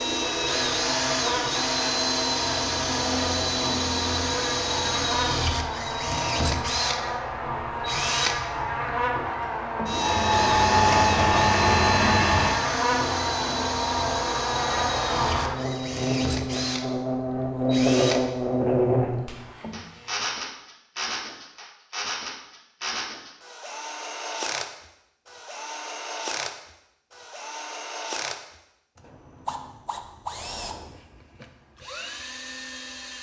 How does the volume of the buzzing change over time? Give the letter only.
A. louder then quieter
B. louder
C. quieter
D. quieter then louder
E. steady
B.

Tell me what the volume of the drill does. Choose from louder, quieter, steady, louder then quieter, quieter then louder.
quieter.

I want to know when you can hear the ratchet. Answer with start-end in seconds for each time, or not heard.
10.0-12.6.